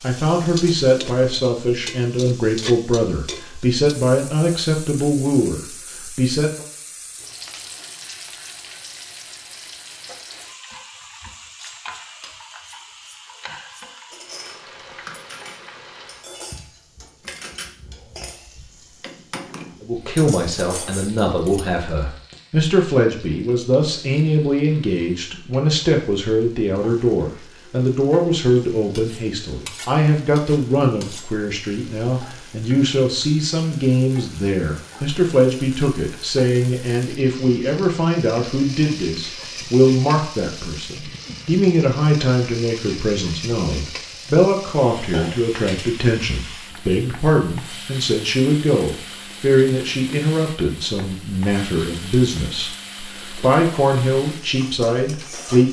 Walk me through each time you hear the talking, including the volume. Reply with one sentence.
You can hear the talking from 0.0 to 6.7 s, at a steady volume; and from 19.8 to 55.6 s, at a steady volume.